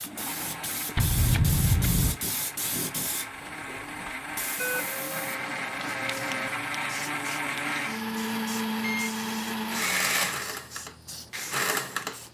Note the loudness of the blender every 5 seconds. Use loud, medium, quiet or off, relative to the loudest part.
medium, loud, loud.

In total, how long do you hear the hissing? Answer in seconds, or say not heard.
12 s.